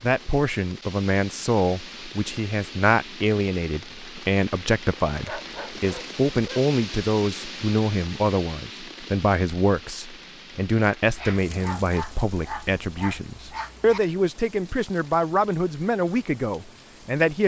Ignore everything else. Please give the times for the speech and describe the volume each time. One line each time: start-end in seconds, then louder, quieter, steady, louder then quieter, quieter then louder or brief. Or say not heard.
0.0-17.4 steady.